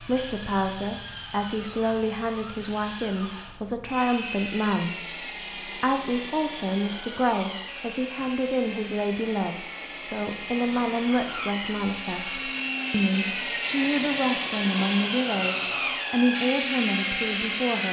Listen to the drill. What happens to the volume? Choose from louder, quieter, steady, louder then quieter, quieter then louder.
louder.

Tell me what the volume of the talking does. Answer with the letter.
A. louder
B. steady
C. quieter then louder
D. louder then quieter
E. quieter
B.